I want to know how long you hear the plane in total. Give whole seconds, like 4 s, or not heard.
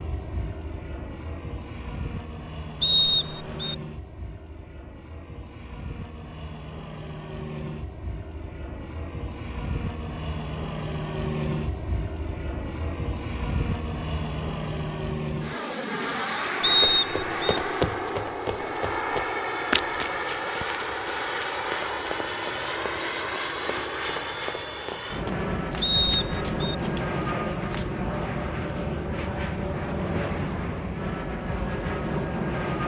33 s.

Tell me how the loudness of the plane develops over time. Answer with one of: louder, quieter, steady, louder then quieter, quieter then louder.
louder.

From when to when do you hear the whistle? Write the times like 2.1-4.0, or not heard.
2.8-3.8, 16.6-17.6, 25.8-26.8.